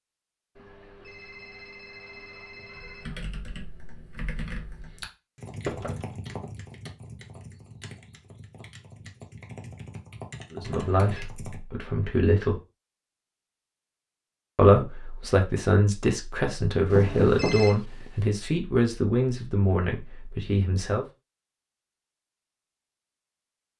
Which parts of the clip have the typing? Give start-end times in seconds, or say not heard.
2.8-11.6.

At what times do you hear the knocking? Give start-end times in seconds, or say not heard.
5.7-6.2, 16.8-18.1.